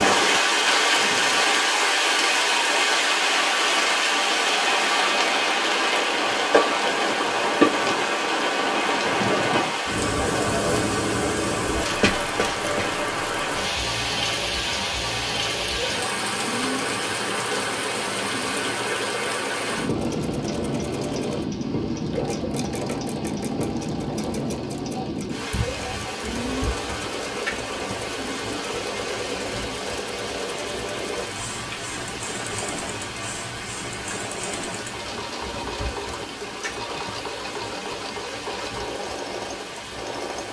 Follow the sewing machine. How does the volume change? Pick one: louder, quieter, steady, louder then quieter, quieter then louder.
steady.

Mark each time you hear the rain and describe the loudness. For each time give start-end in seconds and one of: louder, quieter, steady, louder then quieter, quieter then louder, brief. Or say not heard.
0.0-40.4 quieter.